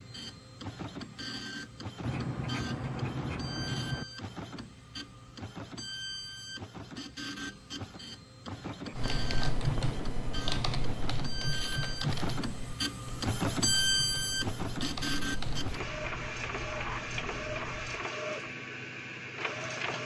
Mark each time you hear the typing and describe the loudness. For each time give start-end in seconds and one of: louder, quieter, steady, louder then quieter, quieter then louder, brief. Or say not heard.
8.9-15.8 quieter.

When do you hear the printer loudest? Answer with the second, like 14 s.
14 s.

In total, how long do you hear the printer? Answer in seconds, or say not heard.
20 s.